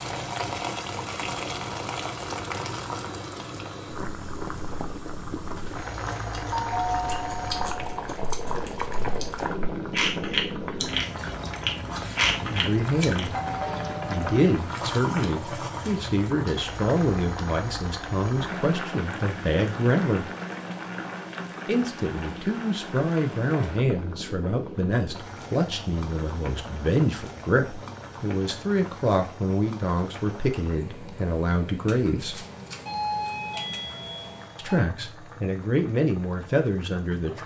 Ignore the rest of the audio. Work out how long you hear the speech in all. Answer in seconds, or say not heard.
21 s.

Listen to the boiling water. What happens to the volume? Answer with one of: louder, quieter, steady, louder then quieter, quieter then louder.
quieter.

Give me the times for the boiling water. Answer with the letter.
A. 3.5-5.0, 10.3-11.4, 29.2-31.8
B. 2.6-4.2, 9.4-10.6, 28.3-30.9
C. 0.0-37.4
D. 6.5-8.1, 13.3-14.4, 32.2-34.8
C.